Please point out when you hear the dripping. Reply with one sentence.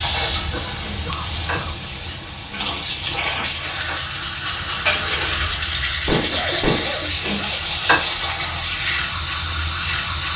The dripping can't be heard in this clip.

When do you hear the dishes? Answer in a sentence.
You can hear the dishes from 0.0 to 8.2 s.